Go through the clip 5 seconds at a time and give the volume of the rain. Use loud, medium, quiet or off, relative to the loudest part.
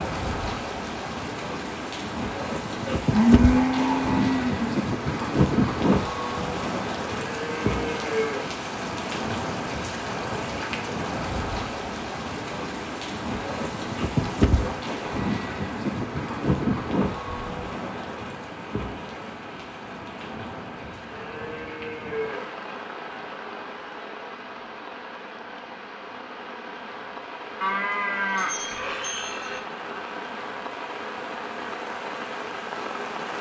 loud, loud, loud, loud, medium, medium, medium.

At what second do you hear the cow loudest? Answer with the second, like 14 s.
3 s.